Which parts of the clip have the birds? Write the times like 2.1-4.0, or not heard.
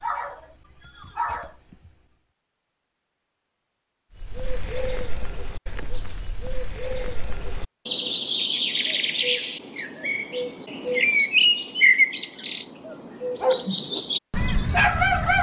4.2-15.3.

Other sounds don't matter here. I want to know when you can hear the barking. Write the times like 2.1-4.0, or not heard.
0.0-1.9, 13.4-14.0, 14.7-15.3.